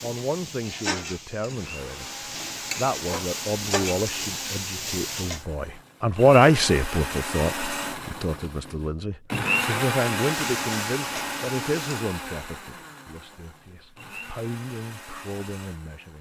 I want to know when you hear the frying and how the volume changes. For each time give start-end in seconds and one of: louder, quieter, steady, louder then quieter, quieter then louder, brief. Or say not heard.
0.0-5.5 quieter then louder
10.2-12.1 brief.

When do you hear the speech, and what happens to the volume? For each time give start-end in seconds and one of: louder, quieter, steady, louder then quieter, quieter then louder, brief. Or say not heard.
0.0-2.1 brief
2.8-16.1 louder then quieter.